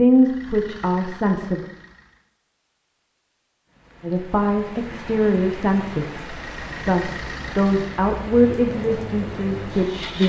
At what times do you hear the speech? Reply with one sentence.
You can hear the speech from 0.0 to 1.6 s and from 4.0 to 10.2 s.